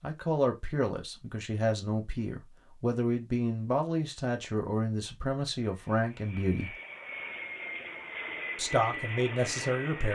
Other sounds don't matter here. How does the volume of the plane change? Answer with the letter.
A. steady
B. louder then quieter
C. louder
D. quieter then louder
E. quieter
C.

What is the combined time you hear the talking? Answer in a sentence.
You can hear the talking for 8 seconds altogether.